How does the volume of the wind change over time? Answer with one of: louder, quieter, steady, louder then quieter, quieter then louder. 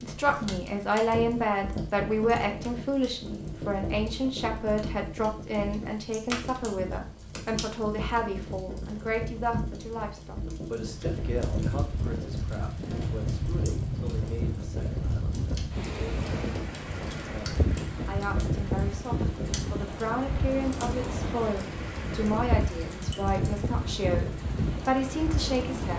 steady.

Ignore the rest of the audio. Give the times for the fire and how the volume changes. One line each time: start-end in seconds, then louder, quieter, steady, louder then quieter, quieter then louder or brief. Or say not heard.
0.0-25.9 steady.